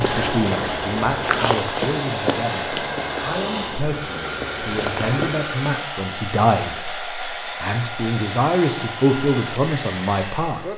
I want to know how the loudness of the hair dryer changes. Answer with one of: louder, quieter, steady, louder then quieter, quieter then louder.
steady.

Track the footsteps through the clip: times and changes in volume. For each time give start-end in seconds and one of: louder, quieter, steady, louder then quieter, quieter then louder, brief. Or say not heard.
0.0-5.5 quieter then louder.